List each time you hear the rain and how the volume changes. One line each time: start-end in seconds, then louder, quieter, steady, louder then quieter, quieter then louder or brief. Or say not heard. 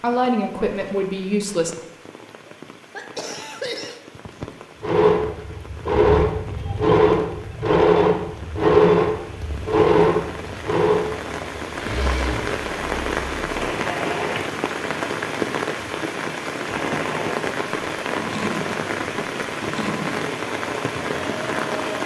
0.0-22.0 louder.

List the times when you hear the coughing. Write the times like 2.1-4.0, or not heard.
2.5-4.5.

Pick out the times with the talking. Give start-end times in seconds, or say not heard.
0.0-1.8.